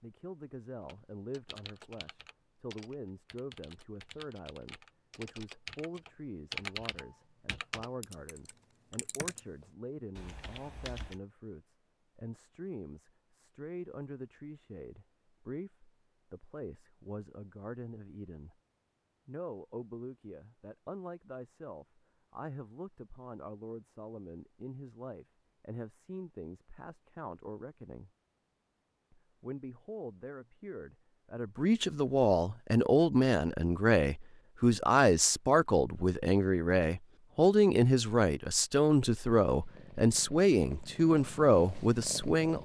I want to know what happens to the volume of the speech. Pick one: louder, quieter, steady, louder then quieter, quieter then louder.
louder.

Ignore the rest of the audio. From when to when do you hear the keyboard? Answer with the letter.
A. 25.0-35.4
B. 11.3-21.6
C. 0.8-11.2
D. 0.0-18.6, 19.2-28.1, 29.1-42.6
C.